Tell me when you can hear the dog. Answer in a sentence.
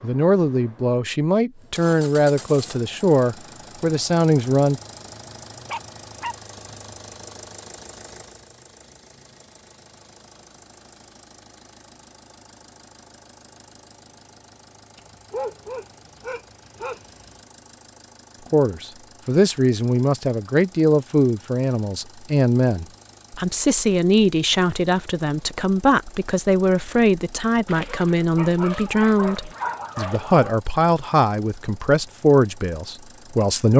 You can hear the dog from 5.2 to 6.3 s, from 14.9 to 17.4 s and from 27.6 to 30.6 s.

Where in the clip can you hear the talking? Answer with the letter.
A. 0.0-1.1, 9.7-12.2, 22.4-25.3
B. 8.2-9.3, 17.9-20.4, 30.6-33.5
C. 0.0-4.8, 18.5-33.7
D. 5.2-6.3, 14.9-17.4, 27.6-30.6
C.